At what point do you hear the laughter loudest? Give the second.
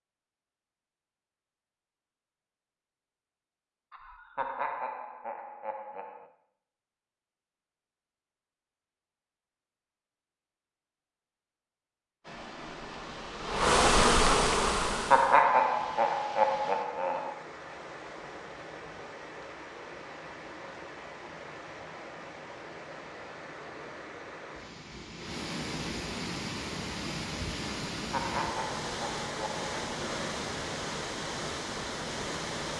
15 s.